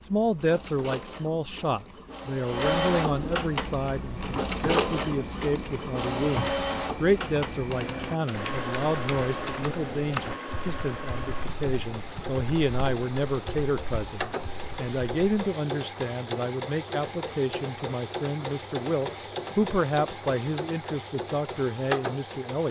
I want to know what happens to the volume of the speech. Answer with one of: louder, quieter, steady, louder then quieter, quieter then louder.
steady.